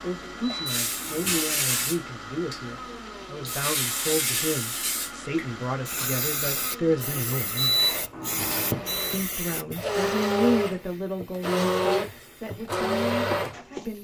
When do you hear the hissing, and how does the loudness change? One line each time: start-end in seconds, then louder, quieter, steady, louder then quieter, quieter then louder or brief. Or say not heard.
0.0-13.9 quieter.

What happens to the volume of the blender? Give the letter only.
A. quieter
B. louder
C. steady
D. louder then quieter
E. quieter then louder
B.